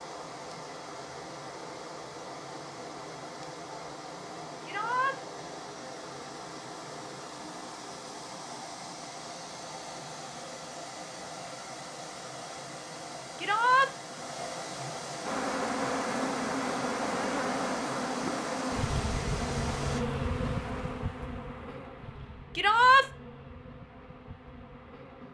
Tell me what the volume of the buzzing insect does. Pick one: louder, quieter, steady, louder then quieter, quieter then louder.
quieter.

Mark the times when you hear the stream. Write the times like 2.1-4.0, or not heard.
0.0-20.0.